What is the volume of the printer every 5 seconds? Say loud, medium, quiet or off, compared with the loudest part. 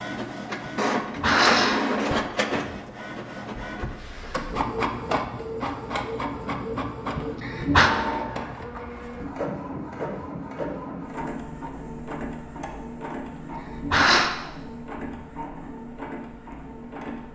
loud, loud, medium, medium.